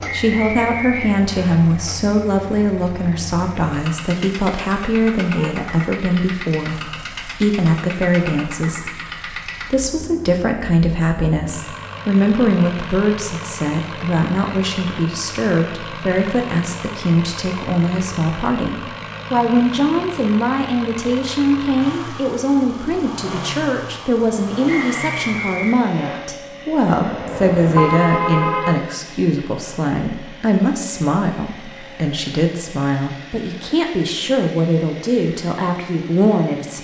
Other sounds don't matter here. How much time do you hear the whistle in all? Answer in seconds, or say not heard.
3 s.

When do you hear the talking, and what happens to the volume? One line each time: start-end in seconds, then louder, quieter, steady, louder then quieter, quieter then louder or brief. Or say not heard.
0.1-36.7 steady.